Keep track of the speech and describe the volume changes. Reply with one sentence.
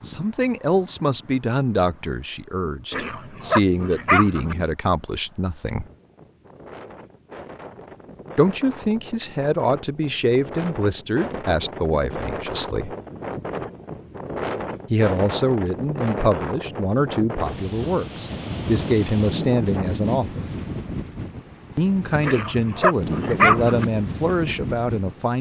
The volume of the speech stays about the same.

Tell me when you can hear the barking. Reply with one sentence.
The barking can be heard from 2.9 to 4.5 s and from 22.2 to 23.9 s.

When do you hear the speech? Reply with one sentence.
You can hear the speech from 0.0 to 5.8 s, from 8.3 to 12.9 s, from 14.9 to 20.4 s and from 21.8 to 25.3 s.